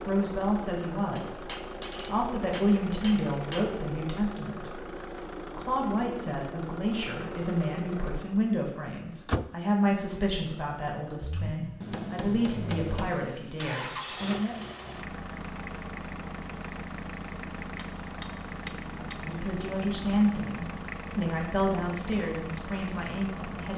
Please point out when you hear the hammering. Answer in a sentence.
The hammering can be heard from 1.1 to 3.8 s, from 11.8 to 13.3 s and from 17.8 to 19.2 s.